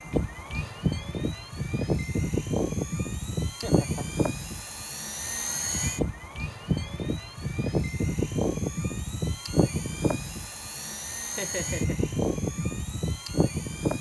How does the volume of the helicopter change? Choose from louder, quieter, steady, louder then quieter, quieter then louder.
steady.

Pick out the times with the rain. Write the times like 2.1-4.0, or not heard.
not heard.